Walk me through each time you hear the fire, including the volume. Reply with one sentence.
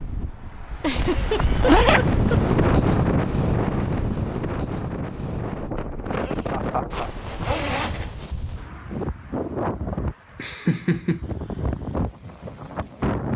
The fire can't be heard in this clip.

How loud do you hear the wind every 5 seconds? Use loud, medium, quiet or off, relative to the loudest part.
loud, medium, medium.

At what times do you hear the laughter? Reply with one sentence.
You can hear the laughter from 0.8 to 2.7 s, from 6.5 to 7.1 s and from 9.9 to 11.3 s.